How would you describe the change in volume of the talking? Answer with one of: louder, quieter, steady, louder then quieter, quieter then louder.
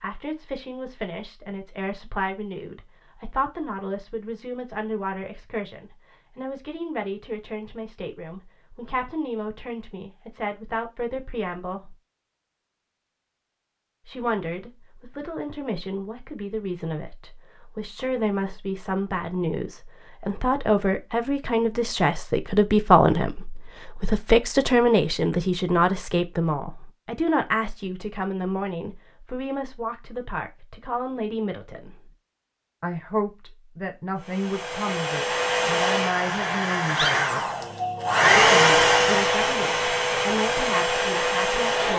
louder then quieter.